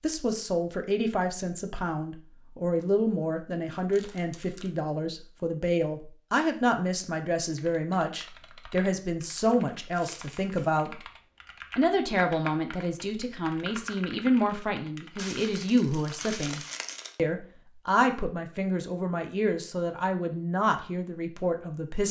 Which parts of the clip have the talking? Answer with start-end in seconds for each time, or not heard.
0.0-11.0, 11.8-22.0.